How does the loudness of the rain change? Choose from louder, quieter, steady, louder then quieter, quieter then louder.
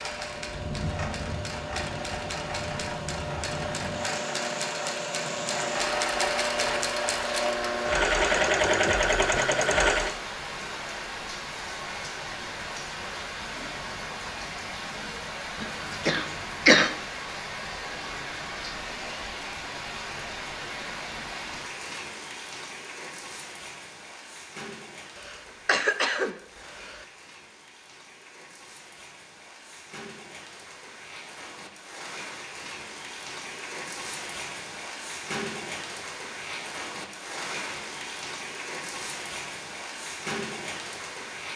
quieter then louder.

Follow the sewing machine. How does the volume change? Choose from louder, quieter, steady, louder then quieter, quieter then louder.
louder.